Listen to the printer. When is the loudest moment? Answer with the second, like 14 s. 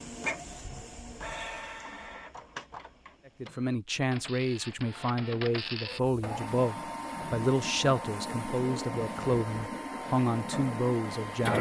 11 s.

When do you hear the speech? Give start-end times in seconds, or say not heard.
3.2-11.5.